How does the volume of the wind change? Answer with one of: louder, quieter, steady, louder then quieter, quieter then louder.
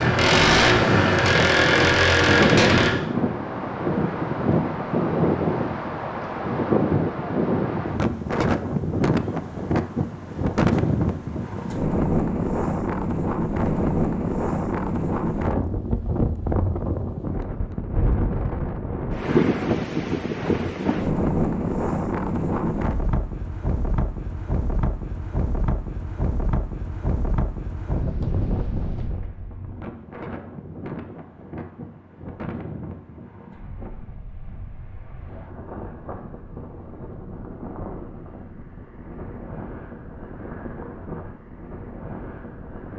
quieter.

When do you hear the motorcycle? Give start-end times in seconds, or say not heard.
0.0-3.0.